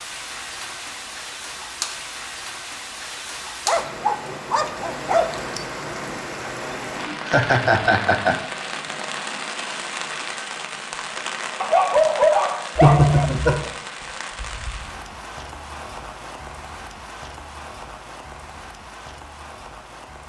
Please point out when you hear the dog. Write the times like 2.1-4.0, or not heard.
3.6-5.7, 11.6-13.3.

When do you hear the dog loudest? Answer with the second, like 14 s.
12 s.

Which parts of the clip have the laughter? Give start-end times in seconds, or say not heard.
7.0-8.3, 12.8-13.7.